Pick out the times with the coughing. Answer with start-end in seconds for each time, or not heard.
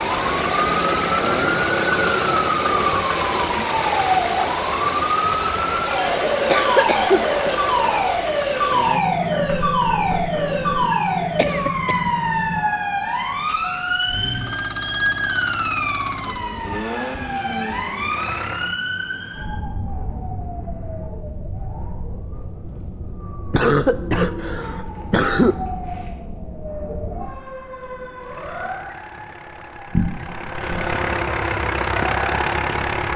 6.5-7.7, 11.3-11.9, 23.5-25.6.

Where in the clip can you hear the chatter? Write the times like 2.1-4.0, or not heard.
not heard.